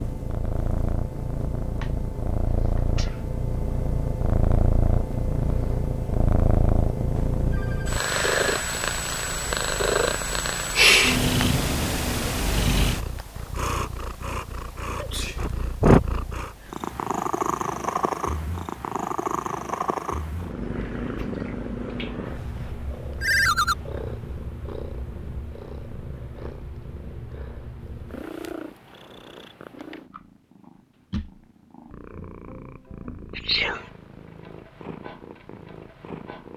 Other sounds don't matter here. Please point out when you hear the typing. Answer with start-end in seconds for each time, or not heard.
not heard.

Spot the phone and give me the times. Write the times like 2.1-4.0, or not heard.
7.2-8.0, 23.2-23.8.